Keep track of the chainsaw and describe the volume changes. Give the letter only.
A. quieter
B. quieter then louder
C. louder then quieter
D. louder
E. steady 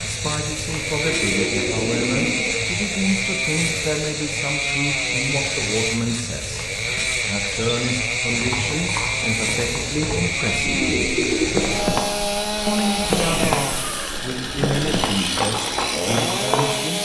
E.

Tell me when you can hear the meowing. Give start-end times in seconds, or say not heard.
not heard.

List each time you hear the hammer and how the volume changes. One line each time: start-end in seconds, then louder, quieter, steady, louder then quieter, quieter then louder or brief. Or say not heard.
not heard.